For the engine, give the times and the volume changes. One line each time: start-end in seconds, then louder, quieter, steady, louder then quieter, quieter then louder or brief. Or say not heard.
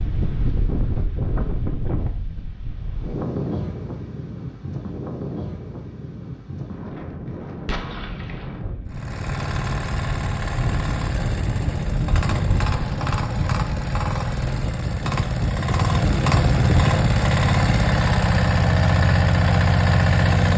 8.8-20.5 louder.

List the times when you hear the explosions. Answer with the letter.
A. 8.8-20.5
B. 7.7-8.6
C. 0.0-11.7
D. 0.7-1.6
B.